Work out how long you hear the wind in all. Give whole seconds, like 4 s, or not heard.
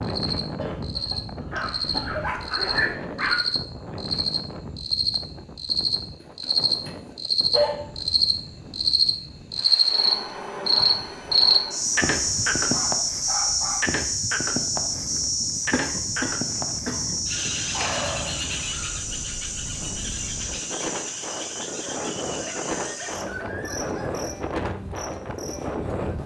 26 s.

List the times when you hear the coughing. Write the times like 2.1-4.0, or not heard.
0.6-2.4, 15.7-17.1.